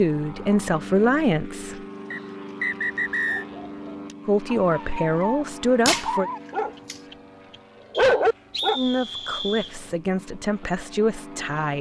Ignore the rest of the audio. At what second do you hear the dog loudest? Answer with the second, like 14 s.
8 s.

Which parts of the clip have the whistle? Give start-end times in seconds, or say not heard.
2.1-3.5, 7.9-9.8.